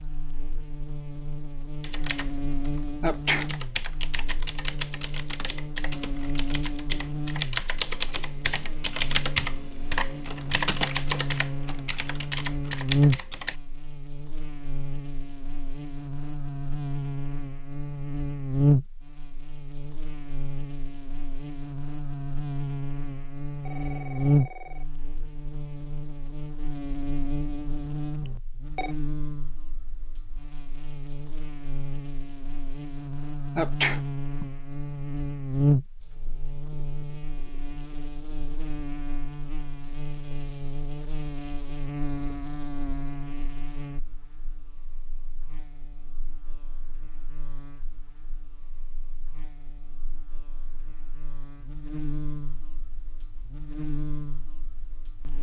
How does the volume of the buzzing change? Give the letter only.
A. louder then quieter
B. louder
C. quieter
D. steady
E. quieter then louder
A.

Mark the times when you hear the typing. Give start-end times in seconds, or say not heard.
1.8-13.6.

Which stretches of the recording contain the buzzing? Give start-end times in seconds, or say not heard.
0.0-55.3.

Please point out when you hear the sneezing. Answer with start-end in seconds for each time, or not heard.
3.0-3.5, 33.5-34.5.